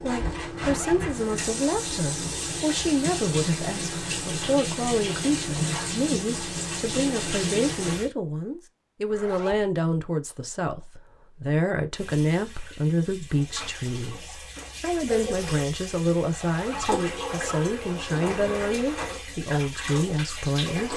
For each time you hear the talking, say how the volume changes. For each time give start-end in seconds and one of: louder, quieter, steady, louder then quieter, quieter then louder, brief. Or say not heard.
0.0-20.9 steady.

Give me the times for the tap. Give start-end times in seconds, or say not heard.
0.0-8.1, 11.9-20.9.